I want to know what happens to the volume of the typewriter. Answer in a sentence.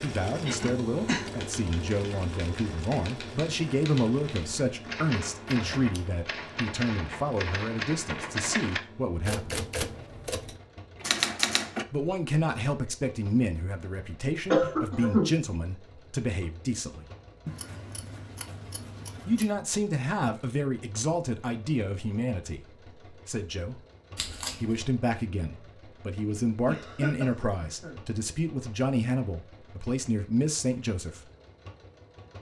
The loudness of the typewriter goes up.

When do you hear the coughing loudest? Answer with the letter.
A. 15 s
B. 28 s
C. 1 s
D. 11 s
A.